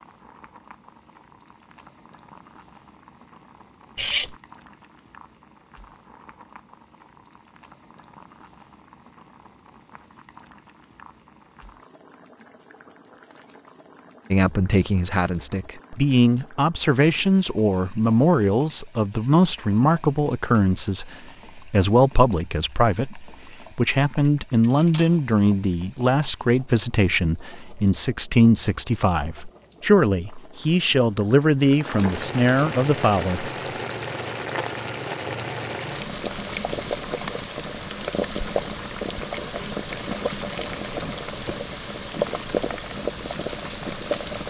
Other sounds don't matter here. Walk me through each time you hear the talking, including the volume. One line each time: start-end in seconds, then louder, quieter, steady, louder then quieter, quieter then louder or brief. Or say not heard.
14.3-33.5 steady.